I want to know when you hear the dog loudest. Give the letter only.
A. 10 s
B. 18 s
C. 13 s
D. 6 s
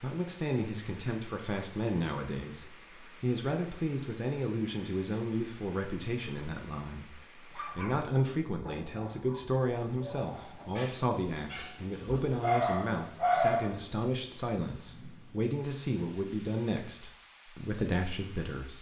C.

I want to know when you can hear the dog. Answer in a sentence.
You can hear the dog from 7.5 to 13.8 s.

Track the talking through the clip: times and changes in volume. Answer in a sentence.
You can hear the talking from 0.0 to 18.7 s, at a steady volume.